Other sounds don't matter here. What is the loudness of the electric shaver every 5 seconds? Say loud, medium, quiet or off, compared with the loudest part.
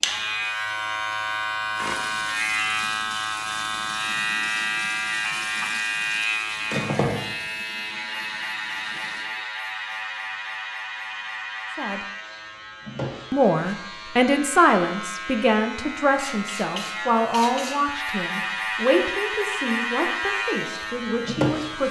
loud, loud, medium, loud, loud.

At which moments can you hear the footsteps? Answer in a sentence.
You can't hear the footsteps here.